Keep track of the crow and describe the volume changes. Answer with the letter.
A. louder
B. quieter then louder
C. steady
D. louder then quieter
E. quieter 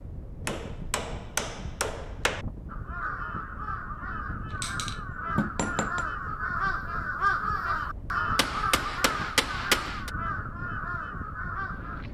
D.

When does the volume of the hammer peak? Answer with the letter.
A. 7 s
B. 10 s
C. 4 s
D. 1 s
B.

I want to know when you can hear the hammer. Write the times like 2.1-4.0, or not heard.
0.5-2.5, 4.6-6.0, 8.3-10.1.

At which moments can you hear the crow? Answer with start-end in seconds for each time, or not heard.
2.6-12.1.